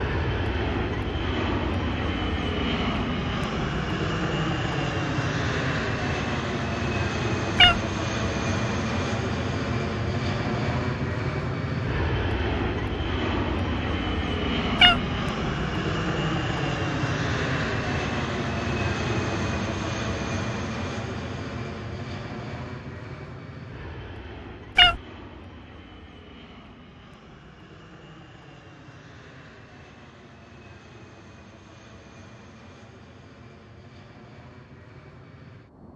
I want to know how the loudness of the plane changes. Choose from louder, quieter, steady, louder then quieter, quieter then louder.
quieter.